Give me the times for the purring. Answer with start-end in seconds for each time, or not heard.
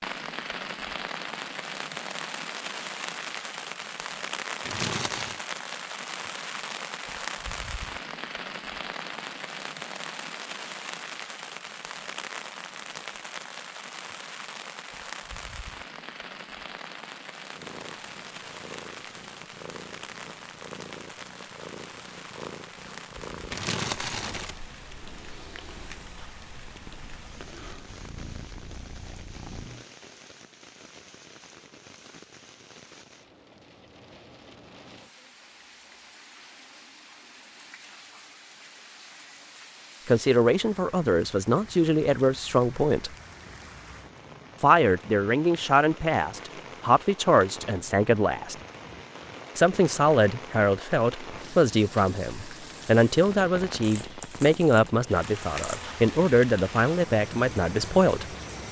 17.6-29.9.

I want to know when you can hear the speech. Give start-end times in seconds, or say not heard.
40.0-43.1, 44.6-48.5, 49.5-58.2.